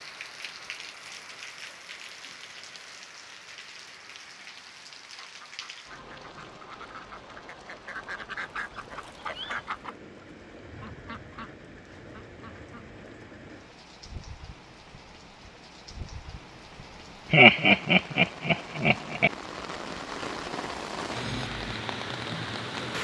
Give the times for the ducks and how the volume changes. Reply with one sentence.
The ducks can be heard from 5.2 to 12.8 s, getting louder then quieter.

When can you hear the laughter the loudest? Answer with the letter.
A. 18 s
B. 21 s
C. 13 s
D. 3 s
A.